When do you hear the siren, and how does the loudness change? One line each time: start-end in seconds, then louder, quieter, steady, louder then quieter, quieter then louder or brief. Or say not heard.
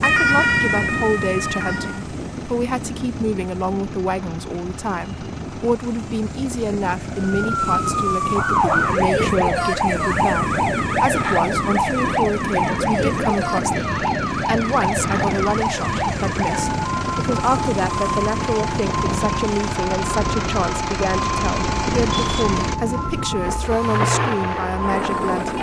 0.0-2.0 brief
7.5-25.5 quieter.